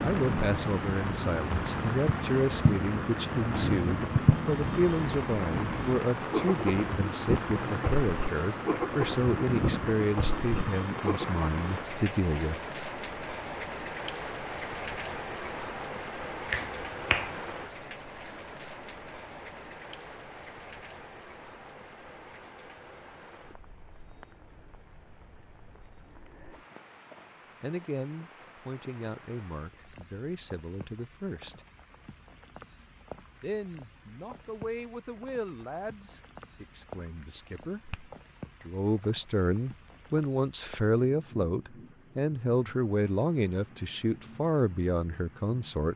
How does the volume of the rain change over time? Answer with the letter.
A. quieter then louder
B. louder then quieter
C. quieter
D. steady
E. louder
C.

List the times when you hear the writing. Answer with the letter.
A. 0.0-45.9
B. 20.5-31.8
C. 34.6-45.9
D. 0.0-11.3
D.